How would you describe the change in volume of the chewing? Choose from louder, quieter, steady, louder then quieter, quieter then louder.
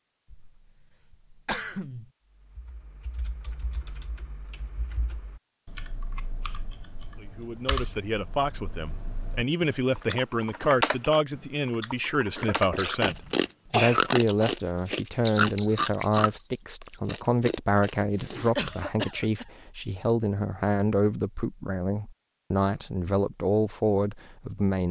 quieter.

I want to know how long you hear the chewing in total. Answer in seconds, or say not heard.
6 s.